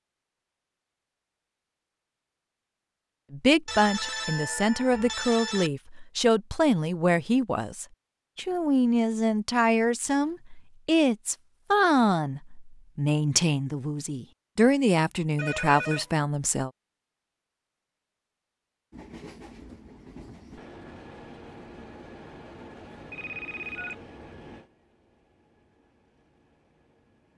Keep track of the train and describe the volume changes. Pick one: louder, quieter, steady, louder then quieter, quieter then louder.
quieter.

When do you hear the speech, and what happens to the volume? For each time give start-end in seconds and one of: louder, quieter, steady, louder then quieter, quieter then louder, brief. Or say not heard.
3.3-16.7 steady.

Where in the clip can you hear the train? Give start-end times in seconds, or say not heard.
18.9-27.3.